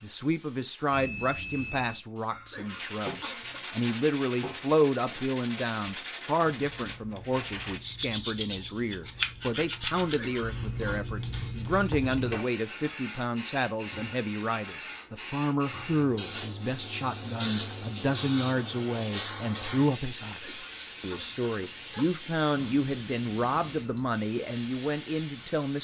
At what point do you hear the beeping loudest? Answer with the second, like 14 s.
24 s.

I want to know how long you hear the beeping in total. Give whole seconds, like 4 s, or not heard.
3 s.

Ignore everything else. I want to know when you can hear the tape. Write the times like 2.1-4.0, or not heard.
not heard.